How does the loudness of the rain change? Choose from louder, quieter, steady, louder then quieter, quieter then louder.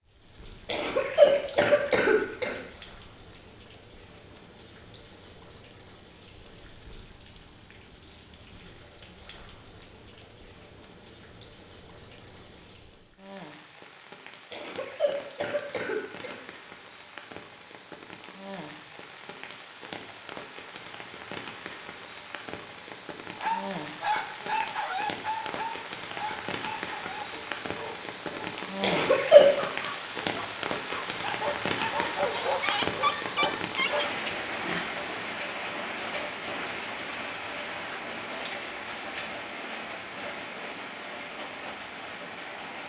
louder.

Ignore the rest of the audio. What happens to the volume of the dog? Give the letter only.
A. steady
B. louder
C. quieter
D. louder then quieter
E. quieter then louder
E.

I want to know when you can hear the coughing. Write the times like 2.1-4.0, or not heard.
0.7-2.5, 14.5-16.4, 28.8-29.5.